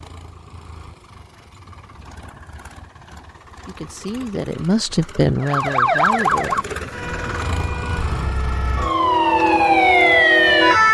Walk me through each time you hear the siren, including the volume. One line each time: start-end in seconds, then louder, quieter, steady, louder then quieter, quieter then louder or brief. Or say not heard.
5.4-10.8 quieter then louder.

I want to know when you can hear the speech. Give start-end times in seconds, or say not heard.
3.6-6.7.